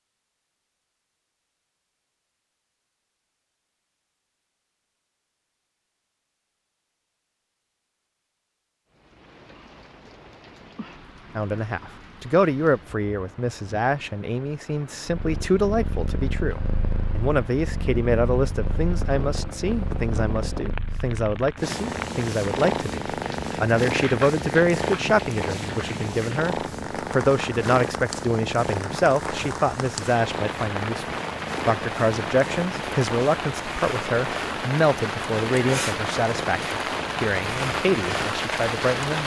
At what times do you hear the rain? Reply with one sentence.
You can hear the rain from 8.9 to 39.2 s.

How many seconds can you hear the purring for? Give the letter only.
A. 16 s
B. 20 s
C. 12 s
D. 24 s
D.